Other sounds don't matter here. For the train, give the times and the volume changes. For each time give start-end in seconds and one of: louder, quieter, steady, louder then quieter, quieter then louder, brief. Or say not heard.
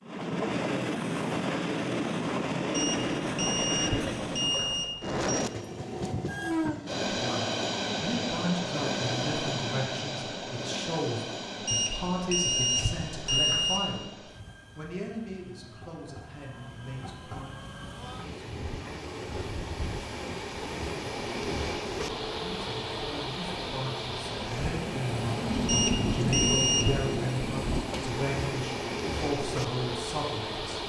0.0-30.8 quieter then louder.